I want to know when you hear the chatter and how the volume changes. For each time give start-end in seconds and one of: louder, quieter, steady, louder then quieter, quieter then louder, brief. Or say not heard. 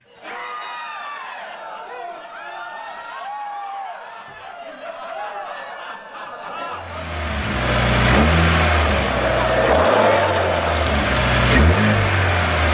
0.1-12.6 louder.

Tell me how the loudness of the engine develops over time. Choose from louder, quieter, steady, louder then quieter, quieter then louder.
quieter then louder.